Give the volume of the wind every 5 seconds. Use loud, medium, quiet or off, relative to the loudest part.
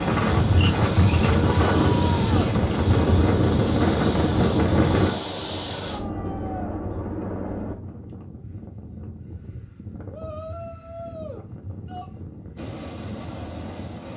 loud, quiet, quiet.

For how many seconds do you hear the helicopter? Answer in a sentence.
You can hear the helicopter for 9 seconds altogether.